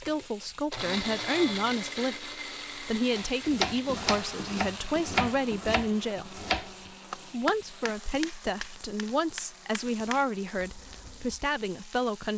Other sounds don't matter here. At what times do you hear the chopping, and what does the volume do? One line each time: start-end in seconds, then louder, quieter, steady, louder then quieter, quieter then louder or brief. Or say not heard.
3.1-11.4 quieter.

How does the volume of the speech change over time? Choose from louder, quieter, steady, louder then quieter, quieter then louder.
steady.